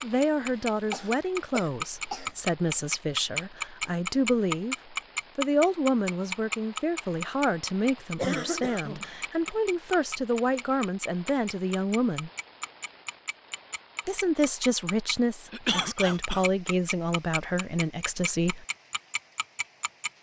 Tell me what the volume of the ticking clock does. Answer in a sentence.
The loudness of the ticking clock goes down.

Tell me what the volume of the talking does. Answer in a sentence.
The loudness of the talking stays about the same.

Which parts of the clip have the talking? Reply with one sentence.
You can hear the talking from 0.0 to 12.3 s and from 14.1 to 18.6 s.